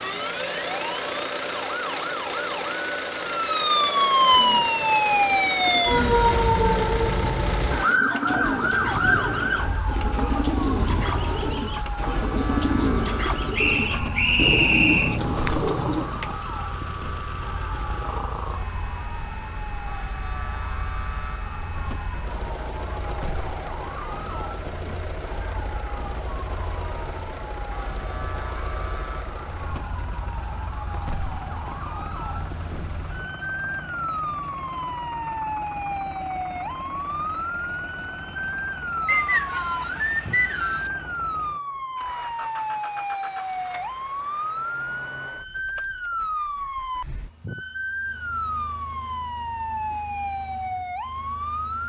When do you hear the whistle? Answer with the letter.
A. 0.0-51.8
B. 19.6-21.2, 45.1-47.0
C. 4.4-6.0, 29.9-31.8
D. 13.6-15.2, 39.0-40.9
D.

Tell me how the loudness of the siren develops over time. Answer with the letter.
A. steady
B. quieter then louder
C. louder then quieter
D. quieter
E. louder
B.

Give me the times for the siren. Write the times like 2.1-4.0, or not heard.
0.0-51.8.